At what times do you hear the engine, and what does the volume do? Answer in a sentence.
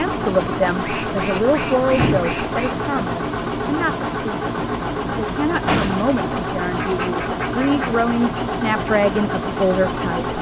You can hear the engine from 0.0 to 10.3 s, at a steady volume.